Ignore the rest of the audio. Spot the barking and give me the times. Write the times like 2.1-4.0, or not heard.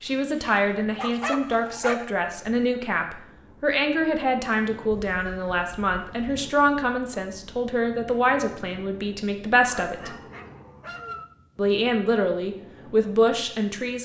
0.1-2.0, 4.9-6.4, 9.8-11.2.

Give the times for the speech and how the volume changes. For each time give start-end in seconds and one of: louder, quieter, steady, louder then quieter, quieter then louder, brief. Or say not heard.
0.0-10.2 steady
11.6-14.0 brief.